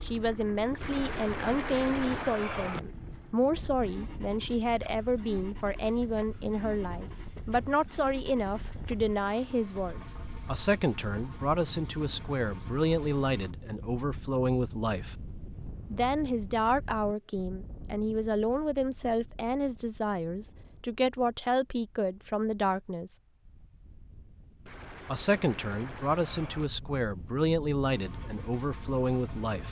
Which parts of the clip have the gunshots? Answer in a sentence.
The gunshots can be heard from 0.8 to 2.8 s and from 24.6 to 26.6 s.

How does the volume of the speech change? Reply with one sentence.
The loudness of the speech stays about the same.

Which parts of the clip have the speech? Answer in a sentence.
The speech can be heard from 0.0 to 15.2 s, from 15.9 to 23.1 s and from 25.1 to 29.6 s.